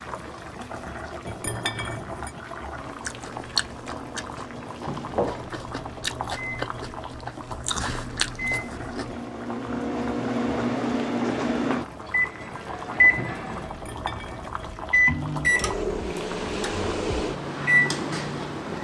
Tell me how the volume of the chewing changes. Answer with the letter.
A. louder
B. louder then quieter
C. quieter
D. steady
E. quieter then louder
E.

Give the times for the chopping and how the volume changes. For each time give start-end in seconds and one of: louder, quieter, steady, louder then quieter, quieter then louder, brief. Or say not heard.
not heard.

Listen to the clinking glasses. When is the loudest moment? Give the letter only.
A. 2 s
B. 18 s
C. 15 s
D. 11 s
A.